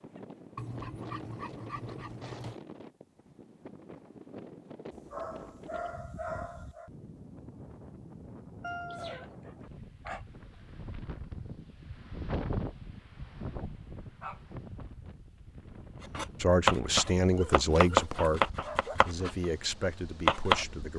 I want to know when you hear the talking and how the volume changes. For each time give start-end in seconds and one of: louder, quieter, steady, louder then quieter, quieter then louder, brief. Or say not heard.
16.4-20.9 quieter.